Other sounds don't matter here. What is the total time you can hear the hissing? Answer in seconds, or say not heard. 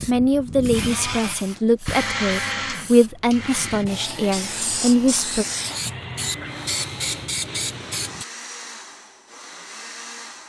8 s.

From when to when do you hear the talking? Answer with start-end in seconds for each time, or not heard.
0.1-5.5.